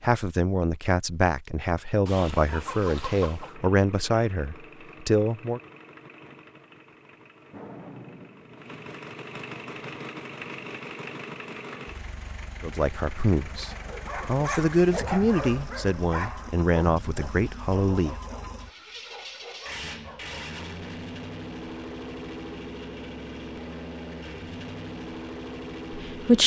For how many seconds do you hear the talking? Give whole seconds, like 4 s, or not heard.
12 s.